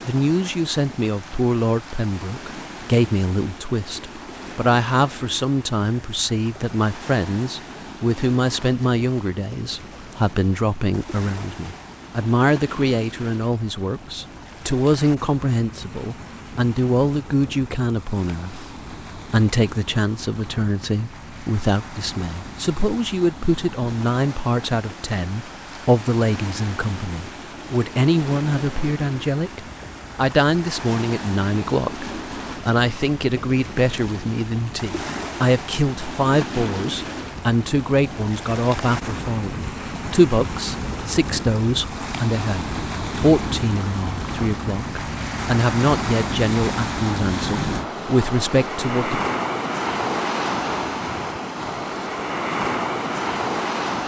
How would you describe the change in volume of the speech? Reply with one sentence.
The loudness of the speech stays about the same.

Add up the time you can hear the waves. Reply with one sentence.
The waves can be heard for 54 seconds in total.